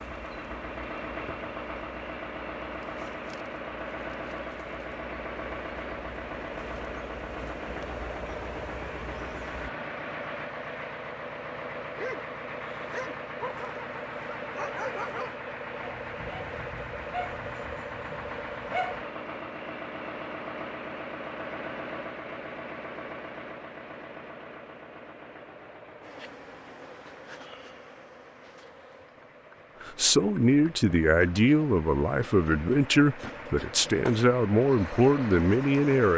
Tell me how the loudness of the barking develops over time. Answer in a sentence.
The loudness of the barking goes down.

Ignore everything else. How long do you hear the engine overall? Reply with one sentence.
The engine can be heard for 36 seconds in total.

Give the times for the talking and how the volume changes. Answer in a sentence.
You can hear the talking from 29.8 to 36.1 s, at a steady volume.